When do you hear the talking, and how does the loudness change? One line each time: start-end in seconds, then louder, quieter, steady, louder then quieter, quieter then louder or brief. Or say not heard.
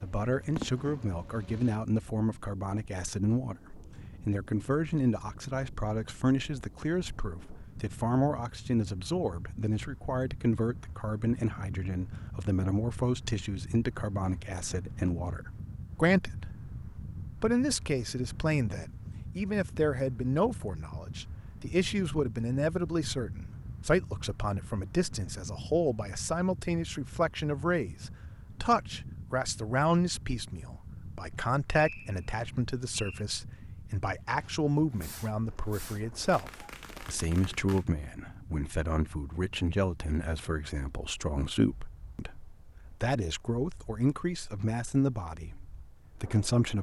0.0-46.7 steady.